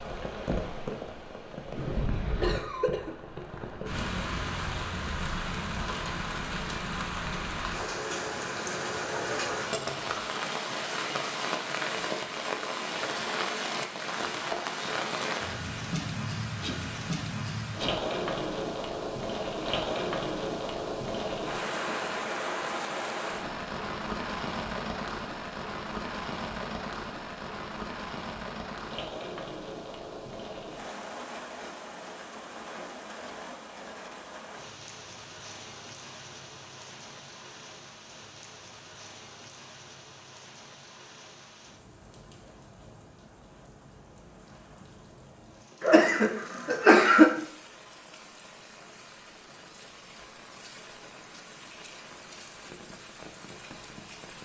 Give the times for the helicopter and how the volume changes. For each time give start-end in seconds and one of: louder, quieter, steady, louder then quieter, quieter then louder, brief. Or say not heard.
not heard.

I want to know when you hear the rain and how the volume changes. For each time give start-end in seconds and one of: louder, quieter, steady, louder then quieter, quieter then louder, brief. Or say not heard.
0.0-54.4 quieter.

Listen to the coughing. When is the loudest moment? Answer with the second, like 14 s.
47 s.